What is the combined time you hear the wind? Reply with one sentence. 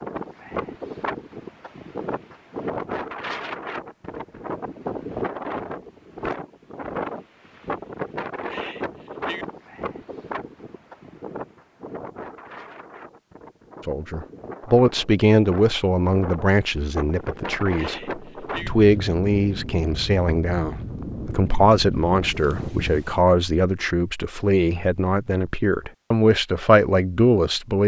You can hear the wind for 23 seconds altogether.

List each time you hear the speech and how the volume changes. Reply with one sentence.
The speech can be heard from 13.8 to 27.8 s, at a steady volume.